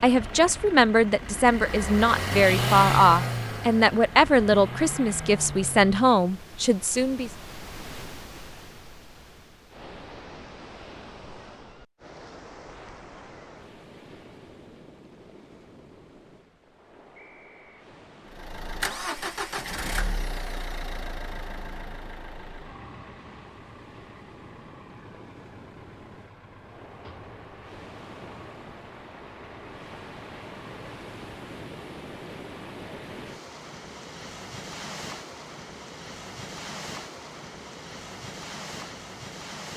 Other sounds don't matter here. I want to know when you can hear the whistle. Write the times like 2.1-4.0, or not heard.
17.1-17.8.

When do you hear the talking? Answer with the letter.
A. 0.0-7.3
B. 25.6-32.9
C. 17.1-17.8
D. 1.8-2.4
A.